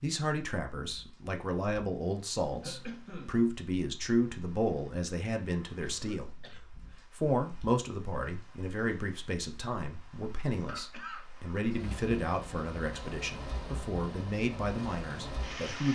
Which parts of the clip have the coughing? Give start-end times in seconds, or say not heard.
2.6-3.4, 5.8-6.7, 10.7-11.2.